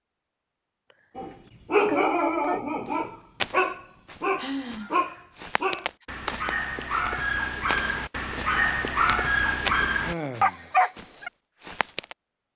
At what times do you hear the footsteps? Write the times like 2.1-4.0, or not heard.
2.9-12.2.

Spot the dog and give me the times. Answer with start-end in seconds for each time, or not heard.
1.1-11.3.